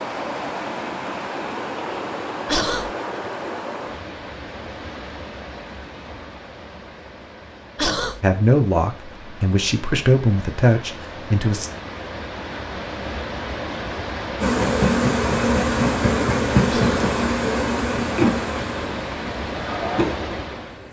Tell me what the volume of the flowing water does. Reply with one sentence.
The volume of the flowing water goes down, then up.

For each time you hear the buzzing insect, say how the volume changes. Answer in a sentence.
You can hear the buzzing insect from 14.4 to 20.8 s, getting quieter.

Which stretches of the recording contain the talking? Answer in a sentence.
The talking can be heard from 8.2 to 11.7 s.